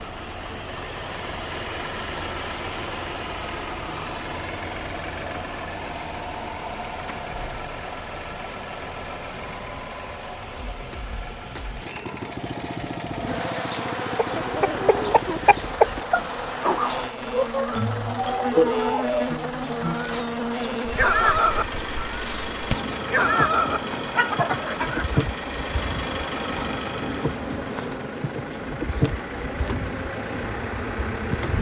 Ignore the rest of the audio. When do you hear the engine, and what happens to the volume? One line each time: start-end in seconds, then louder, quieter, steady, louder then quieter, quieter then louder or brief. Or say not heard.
0.0-31.5 steady.